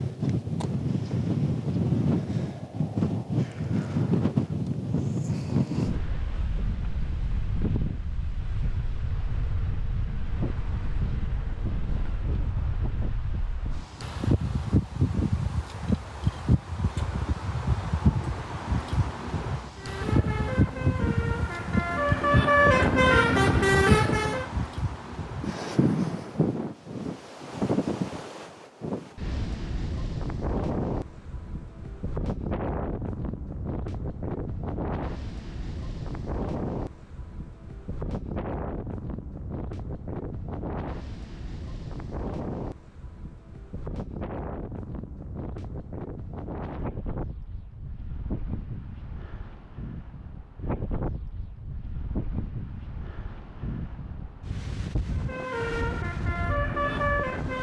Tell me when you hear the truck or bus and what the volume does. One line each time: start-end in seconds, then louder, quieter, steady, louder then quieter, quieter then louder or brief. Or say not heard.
19.8-24.5 louder
55.1-57.5 brief.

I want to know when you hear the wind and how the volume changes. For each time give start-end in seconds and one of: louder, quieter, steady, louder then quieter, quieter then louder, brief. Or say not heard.
0.0-57.5 quieter.